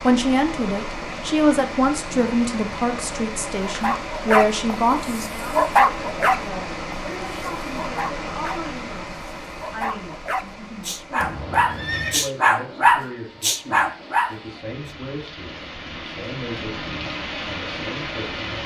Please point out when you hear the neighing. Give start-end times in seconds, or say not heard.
11.2-12.2.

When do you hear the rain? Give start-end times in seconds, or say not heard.
0.0-18.6.